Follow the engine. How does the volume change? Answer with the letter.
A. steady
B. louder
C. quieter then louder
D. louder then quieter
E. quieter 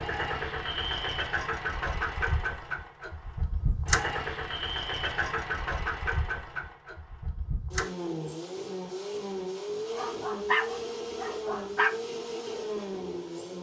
A.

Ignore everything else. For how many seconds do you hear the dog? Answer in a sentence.
The dog can be heard for 2 seconds in total.